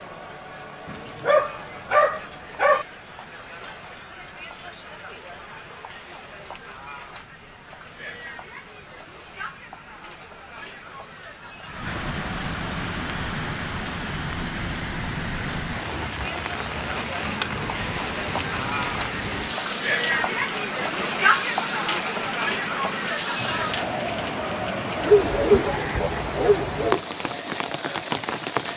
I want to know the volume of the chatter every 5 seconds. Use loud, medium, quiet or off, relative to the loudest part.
quiet, quiet, quiet, medium, loud, medium.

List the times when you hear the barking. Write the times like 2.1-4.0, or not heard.
0.8-2.9, 25.0-27.0.